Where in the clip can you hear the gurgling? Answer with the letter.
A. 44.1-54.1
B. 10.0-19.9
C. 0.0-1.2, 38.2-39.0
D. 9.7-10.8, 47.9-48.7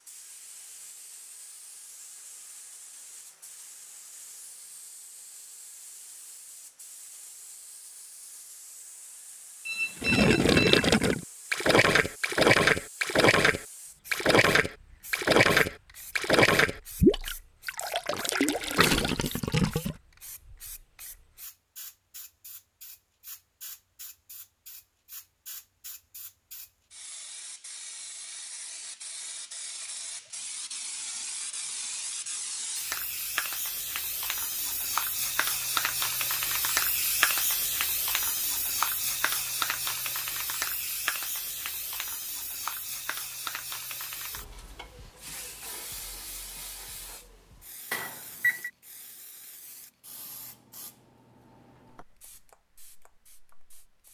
B.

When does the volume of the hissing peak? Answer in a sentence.
The loudest moment of the hissing is at 37 seconds.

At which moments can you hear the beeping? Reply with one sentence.
You can hear the beeping from 9.7 to 10.8 s and from 47.9 to 48.7 s.